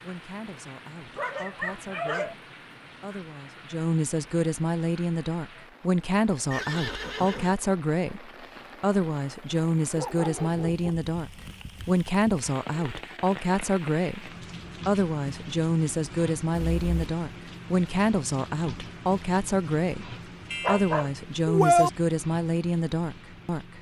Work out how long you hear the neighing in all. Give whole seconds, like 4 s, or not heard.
2 s.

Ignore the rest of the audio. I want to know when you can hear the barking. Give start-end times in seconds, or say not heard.
1.1-2.4, 9.9-10.9, 20.5-21.9.